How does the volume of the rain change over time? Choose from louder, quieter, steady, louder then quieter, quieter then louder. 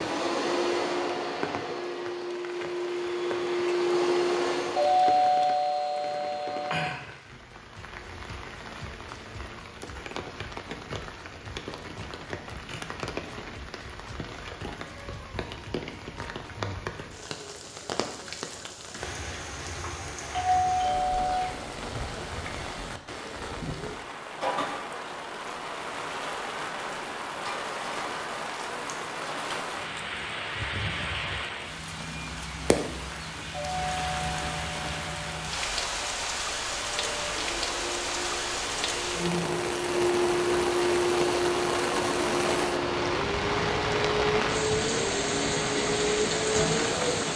louder.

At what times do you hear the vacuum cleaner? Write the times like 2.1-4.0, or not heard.
0.0-5.0, 36.8-47.3.